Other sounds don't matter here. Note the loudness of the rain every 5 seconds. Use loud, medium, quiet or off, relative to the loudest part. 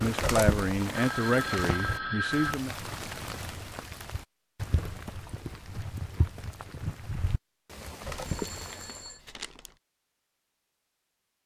loud, loud, off.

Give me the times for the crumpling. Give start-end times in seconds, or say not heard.
0.2-0.9, 8.0-9.7.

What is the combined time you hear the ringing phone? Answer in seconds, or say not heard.
3 s.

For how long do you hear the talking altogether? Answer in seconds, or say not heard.
3 s.